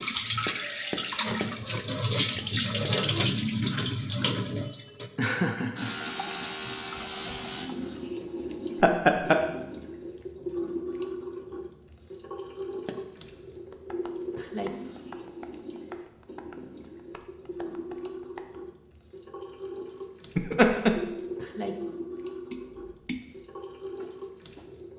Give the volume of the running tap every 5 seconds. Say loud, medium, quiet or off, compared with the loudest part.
loud, medium, medium, quiet, medium.